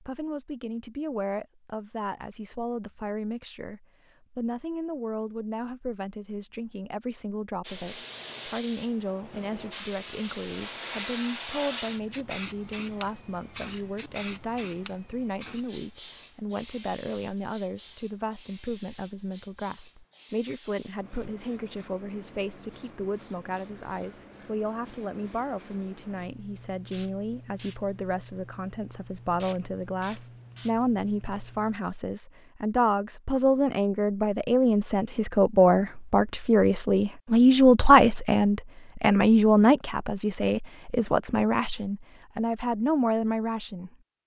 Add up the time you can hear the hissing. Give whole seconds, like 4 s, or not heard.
24 s.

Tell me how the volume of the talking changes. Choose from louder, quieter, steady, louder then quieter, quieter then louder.
louder.